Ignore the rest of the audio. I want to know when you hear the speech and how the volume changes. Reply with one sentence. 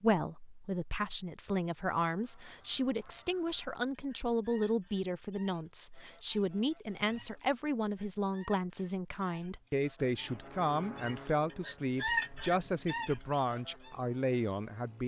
You can hear the speech from 0.0 to 15.0 s, at a steady volume.